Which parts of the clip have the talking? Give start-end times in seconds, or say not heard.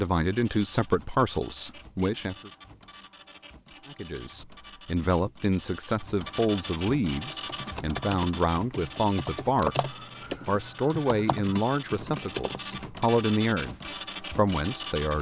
0.0-2.5, 3.9-9.8, 10.4-13.8, 14.3-15.1.